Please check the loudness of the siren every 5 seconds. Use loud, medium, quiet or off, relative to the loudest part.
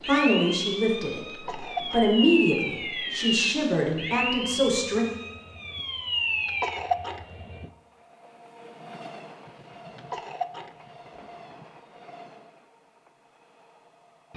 loud, loud, off.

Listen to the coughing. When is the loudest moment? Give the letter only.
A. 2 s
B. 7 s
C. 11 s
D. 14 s
B.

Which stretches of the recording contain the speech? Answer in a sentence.
You can hear the speech from 0.1 to 5.0 s.